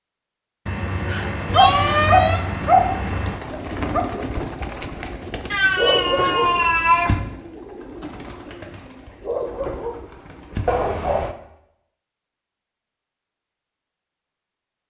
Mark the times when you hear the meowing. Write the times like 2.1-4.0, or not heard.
0.7-3.4, 5.5-7.2, 10.7-11.3.